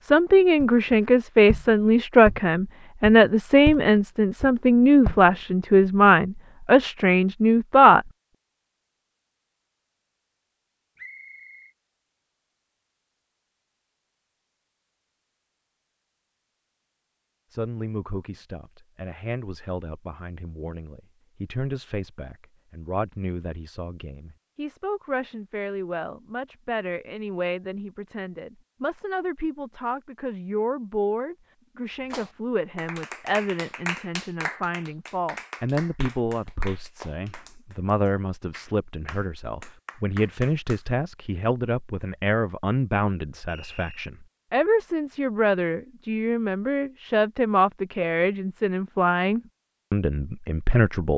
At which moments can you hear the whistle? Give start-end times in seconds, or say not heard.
10.9-11.7, 43.5-44.1.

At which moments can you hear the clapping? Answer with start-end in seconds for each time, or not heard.
32.1-40.9.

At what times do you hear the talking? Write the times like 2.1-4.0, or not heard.
0.0-8.0, 17.5-51.1.